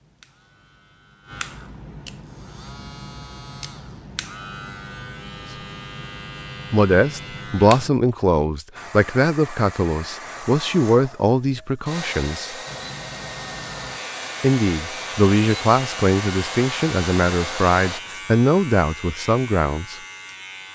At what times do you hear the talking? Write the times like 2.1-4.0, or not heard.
6.7-12.6, 14.4-20.0.